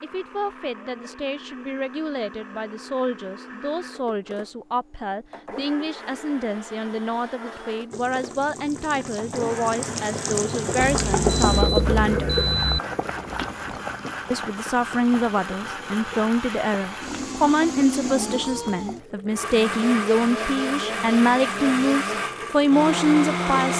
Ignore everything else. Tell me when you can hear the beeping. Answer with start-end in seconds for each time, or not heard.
10.8-12.8.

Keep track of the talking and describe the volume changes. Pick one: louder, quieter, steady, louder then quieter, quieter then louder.
louder.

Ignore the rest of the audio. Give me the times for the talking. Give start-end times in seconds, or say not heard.
0.0-12.3, 14.3-23.7.